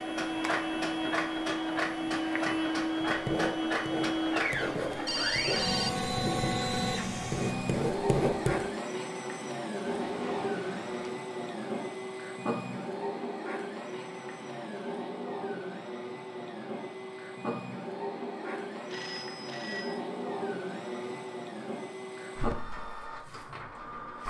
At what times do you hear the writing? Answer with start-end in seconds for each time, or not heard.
3.0-8.6.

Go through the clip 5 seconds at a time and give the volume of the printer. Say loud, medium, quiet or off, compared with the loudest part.
loud, loud, medium, medium, medium.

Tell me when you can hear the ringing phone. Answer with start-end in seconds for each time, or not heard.
5.0-6.0, 9.8-11.1, 18.9-20.1.